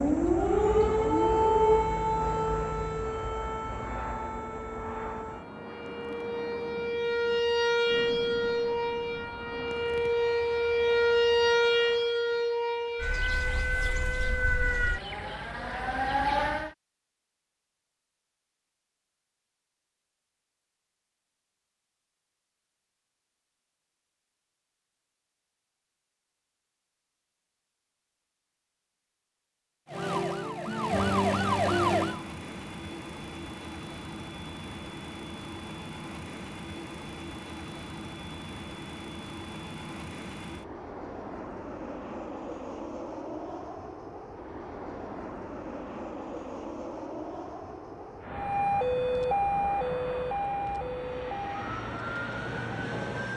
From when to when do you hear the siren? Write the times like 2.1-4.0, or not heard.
0.0-16.8, 29.9-32.2, 48.3-53.3.